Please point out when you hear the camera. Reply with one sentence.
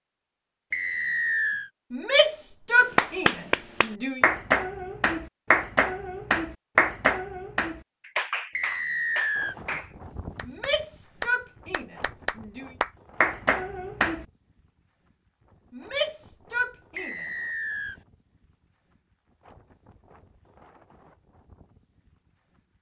The camera can't be heard in this clip.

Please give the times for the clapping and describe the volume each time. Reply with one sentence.
The clapping can be heard from 3.0 to 14.2 s, getting quieter then louder.